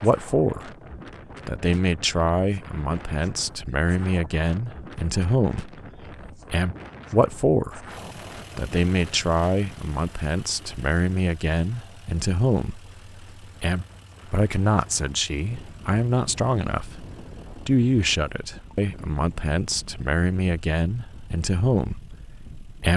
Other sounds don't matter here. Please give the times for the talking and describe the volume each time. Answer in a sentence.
The talking can be heard briefly from 0.0 to 0.8 s; from 1.4 to 7.8 s, at a steady volume; from 8.6 to 17.1 s, at a steady volume; and from 17.6 to 22.9 s, at a steady volume.